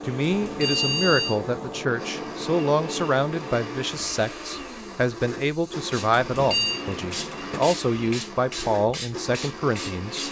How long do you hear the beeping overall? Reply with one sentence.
You can hear the beeping for 2 seconds altogether.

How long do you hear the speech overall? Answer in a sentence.
You can hear the speech for 10 seconds altogether.